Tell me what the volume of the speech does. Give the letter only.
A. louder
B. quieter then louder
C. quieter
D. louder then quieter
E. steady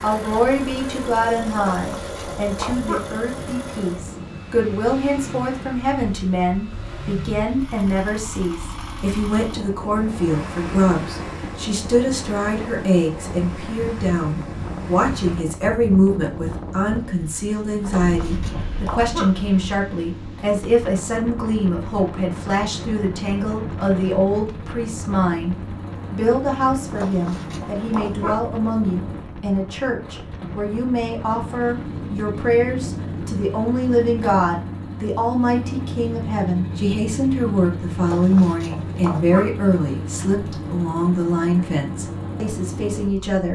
E.